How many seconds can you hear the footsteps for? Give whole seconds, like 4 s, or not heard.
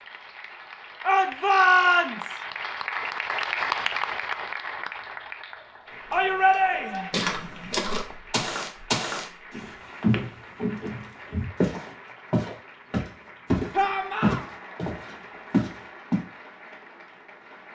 9 s.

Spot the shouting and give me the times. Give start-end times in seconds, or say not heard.
1.0-2.4, 6.1-7.1, 13.7-14.4.